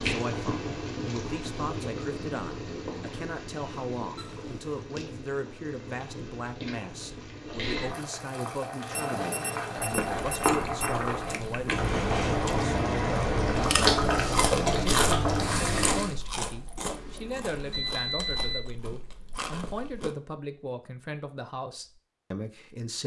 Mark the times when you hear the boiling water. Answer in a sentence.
You can hear the boiling water from 0.0 to 16.1 s.